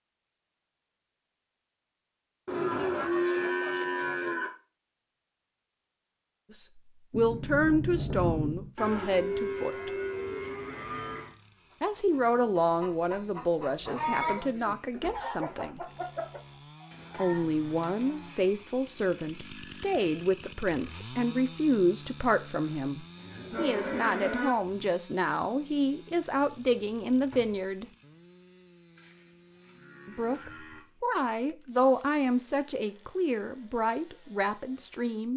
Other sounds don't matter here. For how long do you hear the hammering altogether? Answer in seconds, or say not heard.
not heard.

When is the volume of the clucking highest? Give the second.
14 s.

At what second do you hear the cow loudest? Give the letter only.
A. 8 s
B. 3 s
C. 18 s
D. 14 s
B.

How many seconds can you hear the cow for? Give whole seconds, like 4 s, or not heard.
10 s.